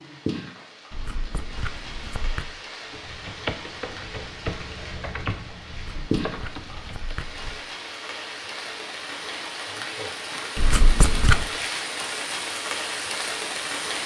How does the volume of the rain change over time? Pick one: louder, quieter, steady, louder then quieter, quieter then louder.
louder.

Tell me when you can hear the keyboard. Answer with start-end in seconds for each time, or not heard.
2.9-7.2.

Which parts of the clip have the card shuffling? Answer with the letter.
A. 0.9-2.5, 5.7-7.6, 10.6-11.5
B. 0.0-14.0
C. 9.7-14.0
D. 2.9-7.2
A.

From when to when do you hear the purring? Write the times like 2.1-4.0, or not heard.
not heard.